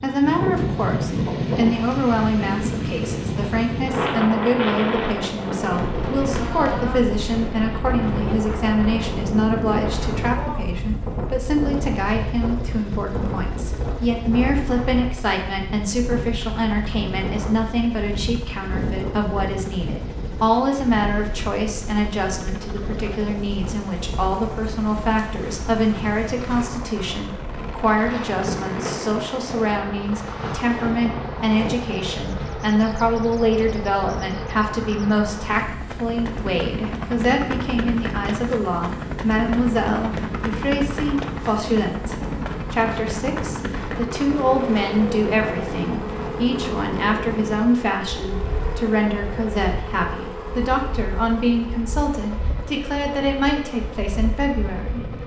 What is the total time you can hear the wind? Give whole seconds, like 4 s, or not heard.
55 s.